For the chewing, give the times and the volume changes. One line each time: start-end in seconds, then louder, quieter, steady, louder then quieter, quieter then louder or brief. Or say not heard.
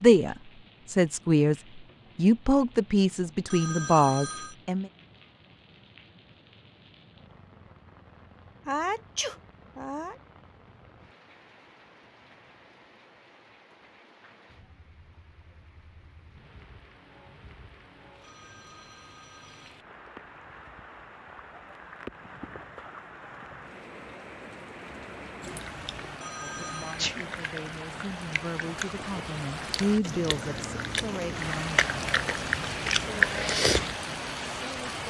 25.4-34.0 louder.